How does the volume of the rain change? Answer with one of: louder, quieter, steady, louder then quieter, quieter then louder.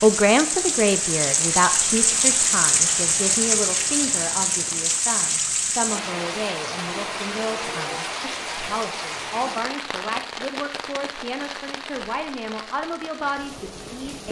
quieter.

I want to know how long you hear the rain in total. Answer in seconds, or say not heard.
14 s.